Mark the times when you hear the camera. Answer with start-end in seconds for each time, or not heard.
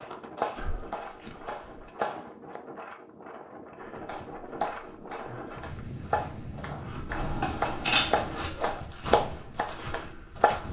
7.0-8.5.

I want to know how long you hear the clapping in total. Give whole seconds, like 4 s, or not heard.
9 s.